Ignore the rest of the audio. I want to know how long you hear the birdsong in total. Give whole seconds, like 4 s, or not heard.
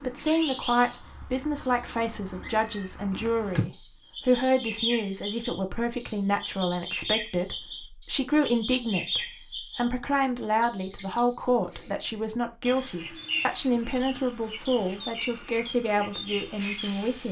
17 s.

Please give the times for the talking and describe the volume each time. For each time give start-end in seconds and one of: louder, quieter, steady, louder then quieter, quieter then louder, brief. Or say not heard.
0.0-17.2 steady.